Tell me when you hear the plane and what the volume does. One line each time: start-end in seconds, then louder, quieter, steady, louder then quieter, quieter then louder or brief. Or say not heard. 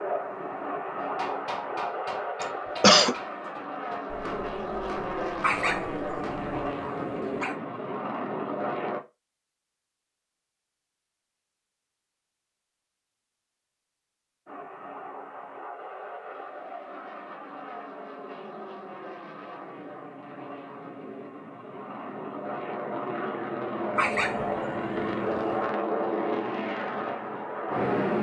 0.0-9.0 steady
14.4-28.1 louder.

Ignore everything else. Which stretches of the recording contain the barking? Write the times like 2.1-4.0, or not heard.
5.4-7.5, 23.9-25.6.